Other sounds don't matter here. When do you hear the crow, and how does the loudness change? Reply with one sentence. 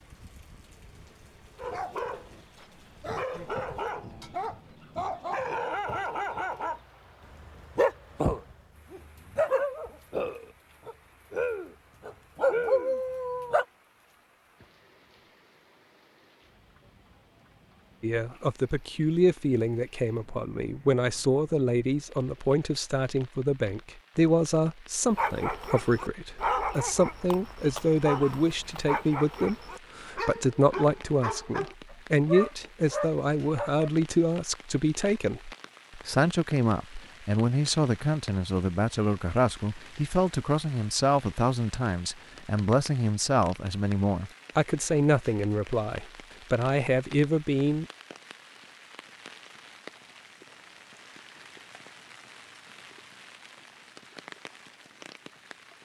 You can't hear the crow here.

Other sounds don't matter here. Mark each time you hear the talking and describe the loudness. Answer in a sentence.
The talking can be heard from 18.0 to 47.9 s, at a steady volume.